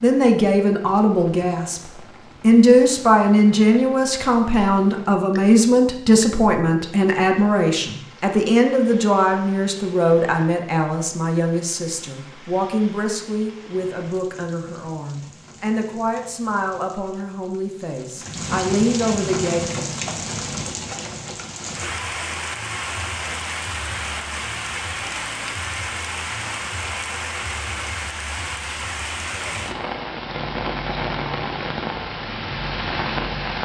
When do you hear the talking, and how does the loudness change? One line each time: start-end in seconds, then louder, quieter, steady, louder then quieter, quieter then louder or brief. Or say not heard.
0.0-19.6 quieter.